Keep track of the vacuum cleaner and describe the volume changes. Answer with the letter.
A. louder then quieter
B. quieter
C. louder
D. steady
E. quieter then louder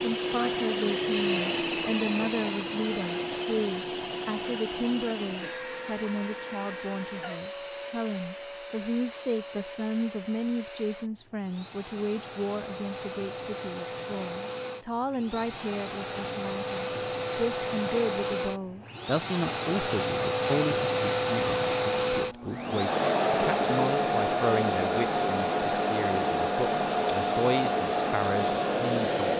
E.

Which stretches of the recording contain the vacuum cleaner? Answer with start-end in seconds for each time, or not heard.
0.0-29.3.